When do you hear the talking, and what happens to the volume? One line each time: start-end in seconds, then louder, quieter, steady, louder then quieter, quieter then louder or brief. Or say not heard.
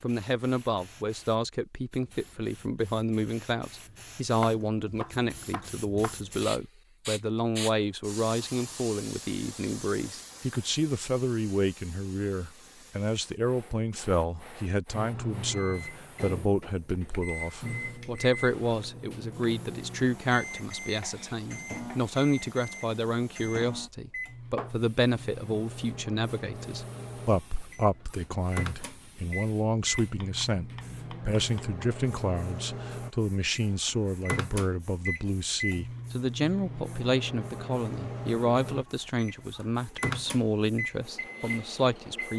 0.0-42.3 steady.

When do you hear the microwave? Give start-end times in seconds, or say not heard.
14.9-42.3.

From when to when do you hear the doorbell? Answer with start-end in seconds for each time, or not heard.
not heard.